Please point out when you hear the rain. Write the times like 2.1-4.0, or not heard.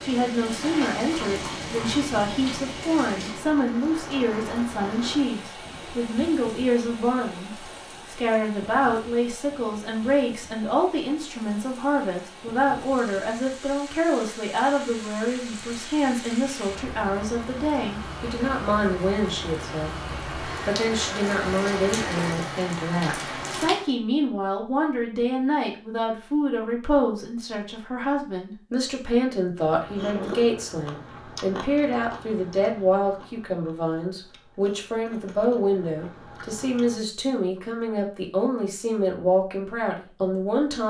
0.0-23.9.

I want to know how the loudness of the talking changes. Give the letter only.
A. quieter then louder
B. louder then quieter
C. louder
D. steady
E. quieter
D.